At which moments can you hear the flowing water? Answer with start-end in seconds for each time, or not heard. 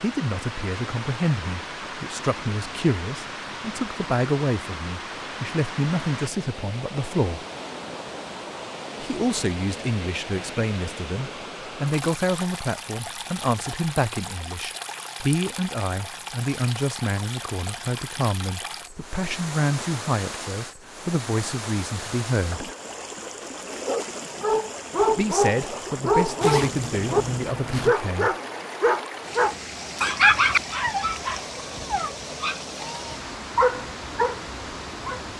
0.0-35.3.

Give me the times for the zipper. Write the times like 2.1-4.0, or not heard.
26.4-27.9.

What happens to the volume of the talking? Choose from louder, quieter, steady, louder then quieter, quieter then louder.
steady.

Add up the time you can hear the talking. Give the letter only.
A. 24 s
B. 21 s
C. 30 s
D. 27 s
A.